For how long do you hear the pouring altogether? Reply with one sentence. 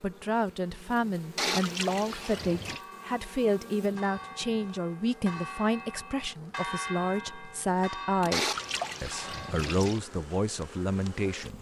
The pouring can be heard for 3 seconds in total.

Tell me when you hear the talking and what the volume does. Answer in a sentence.
You can hear the talking from 0.0 to 11.5 s, at a steady volume.